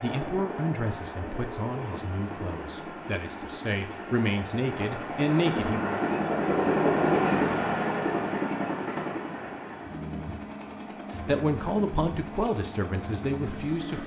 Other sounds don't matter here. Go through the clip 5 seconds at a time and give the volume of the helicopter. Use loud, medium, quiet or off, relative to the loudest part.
medium, loud, medium.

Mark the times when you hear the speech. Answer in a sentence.
You can hear the speech from 0.0 to 6.0 s and from 11.2 to 14.0 s.